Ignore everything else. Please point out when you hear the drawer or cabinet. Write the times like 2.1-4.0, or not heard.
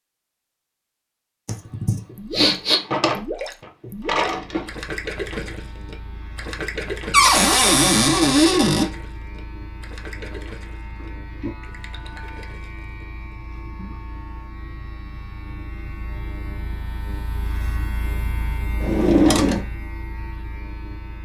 2.7-3.2, 4.0-4.7, 7.1-8.9, 18.8-19.6.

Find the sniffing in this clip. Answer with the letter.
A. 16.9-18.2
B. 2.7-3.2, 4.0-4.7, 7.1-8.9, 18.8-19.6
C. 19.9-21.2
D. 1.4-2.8
D.